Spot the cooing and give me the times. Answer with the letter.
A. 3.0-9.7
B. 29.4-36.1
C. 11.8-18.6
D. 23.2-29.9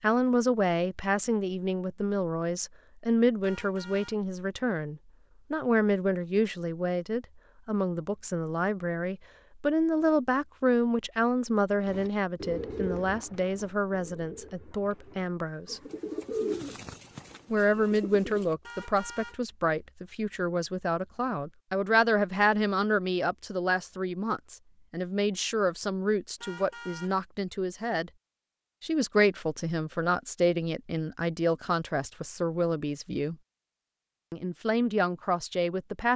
C.